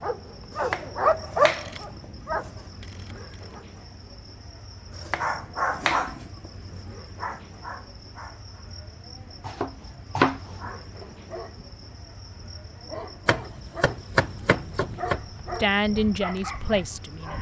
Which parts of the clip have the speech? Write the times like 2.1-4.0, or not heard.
15.6-17.3.